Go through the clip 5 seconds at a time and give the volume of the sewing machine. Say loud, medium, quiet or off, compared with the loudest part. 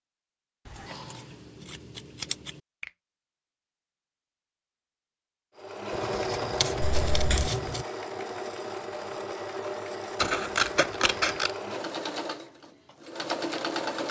off, loud, loud.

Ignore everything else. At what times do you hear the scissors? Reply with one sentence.
You can hear the scissors from 0.7 to 2.6 s, from 5.9 to 7.8 s and from 10.2 to 11.6 s.